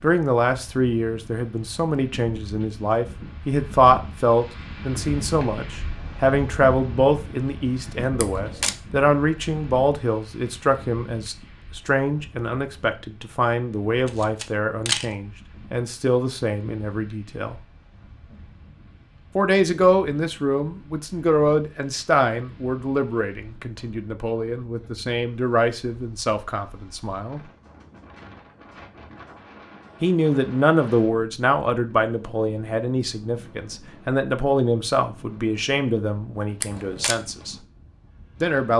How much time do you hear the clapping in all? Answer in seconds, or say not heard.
not heard.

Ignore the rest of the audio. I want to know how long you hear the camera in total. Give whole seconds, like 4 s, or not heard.
2 s.